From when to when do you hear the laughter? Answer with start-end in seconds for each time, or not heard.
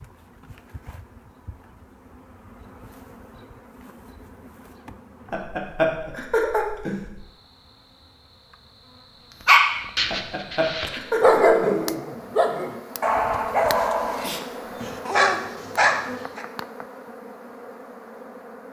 5.3-7.0, 10.1-11.8.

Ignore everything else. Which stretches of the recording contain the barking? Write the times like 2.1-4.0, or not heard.
9.4-16.4.